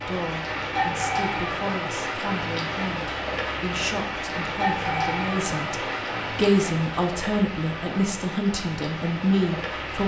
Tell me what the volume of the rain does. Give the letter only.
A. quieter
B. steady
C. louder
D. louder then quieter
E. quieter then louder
A.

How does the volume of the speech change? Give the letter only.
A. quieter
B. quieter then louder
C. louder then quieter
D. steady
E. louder
E.